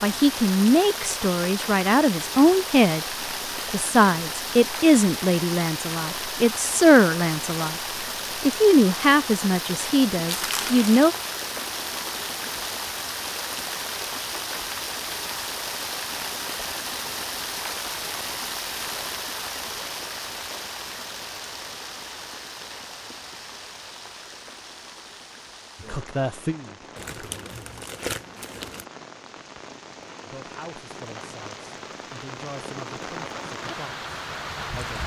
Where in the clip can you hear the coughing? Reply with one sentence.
The coughing can't be heard in this clip.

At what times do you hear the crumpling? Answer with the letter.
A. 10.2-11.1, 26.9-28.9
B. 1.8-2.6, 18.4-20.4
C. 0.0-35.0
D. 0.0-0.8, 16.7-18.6
A.